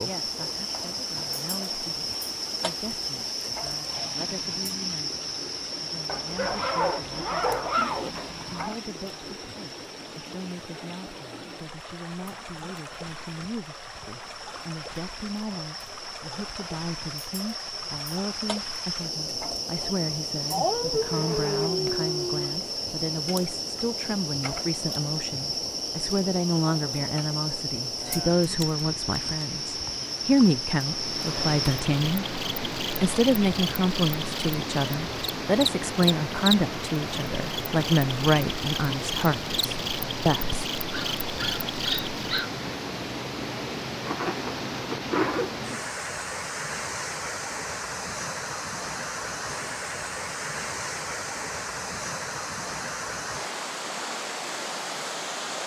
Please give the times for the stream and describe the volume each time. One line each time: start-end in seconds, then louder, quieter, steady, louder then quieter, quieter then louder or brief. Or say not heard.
0.0-55.6 louder.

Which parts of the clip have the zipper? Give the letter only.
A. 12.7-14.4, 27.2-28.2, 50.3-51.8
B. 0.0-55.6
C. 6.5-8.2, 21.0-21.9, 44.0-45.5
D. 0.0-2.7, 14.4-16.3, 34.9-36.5
C.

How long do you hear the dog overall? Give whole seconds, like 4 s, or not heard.
6 s.